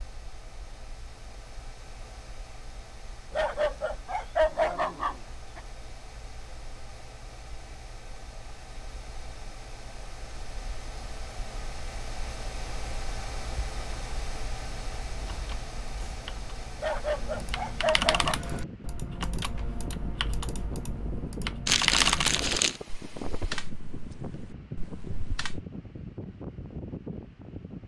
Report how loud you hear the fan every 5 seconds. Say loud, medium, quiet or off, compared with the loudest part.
medium, medium, loud, loud, loud, loud.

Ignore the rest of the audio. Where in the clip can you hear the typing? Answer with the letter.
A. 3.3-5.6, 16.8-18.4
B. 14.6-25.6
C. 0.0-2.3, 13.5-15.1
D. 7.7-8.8
B.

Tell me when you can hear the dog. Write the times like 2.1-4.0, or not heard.
3.3-5.6, 16.8-18.4.